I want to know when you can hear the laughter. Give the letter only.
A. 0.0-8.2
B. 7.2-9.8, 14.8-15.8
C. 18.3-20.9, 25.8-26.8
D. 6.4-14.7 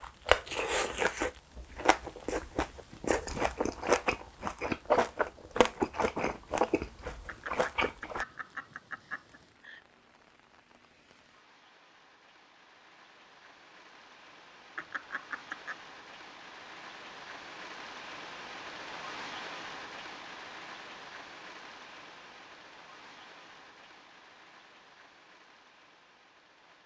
B.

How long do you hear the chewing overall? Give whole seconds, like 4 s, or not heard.
8 s.